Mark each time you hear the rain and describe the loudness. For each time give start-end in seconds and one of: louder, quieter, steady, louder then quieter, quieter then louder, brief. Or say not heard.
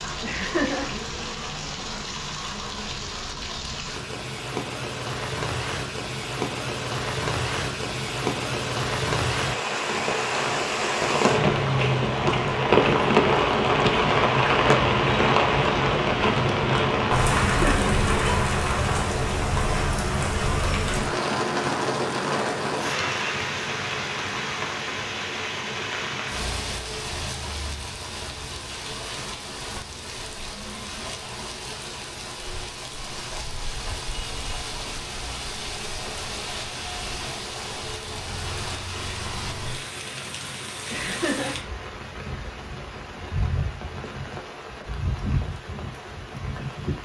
0.0-47.0 louder then quieter.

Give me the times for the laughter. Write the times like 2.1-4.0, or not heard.
0.2-0.9, 17.5-17.9, 40.9-41.6.